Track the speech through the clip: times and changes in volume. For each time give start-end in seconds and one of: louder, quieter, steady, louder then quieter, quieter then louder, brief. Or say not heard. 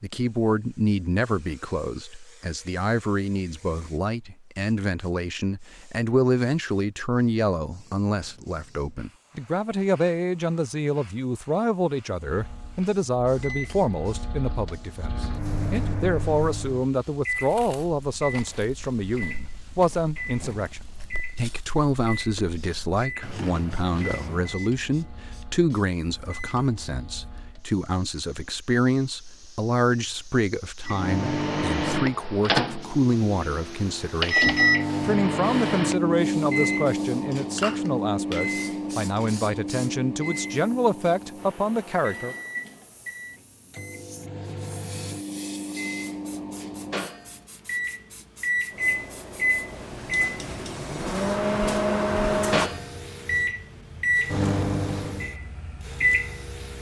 0.0-42.4 steady.